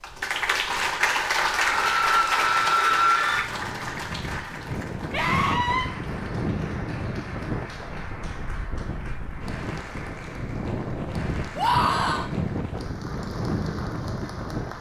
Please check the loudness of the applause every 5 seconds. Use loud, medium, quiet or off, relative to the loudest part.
loud, quiet, quiet.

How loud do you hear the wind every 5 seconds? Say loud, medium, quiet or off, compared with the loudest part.
medium, loud, loud.